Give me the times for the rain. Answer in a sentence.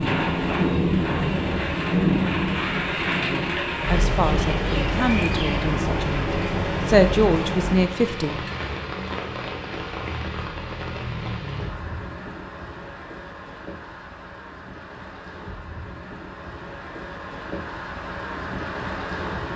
The rain can be heard from 0.0 to 19.5 s.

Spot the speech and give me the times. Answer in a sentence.
The speech can be heard from 3.0 to 8.4 s.